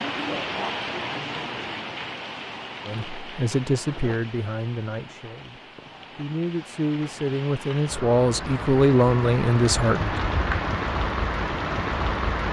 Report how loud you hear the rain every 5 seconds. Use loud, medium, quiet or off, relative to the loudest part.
medium, medium, loud.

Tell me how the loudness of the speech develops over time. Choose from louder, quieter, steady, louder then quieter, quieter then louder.
quieter then louder.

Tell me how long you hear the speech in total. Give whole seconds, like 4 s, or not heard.
7 s.